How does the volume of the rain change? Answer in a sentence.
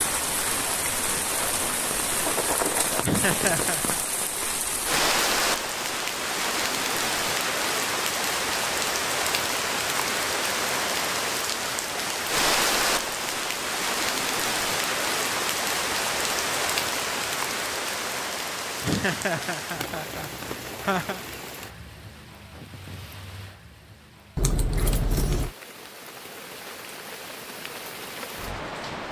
The loudness of the rain goes down.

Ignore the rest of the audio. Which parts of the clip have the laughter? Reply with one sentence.
The laughter can be heard from 3.0 to 4.0 s and from 18.8 to 21.2 s.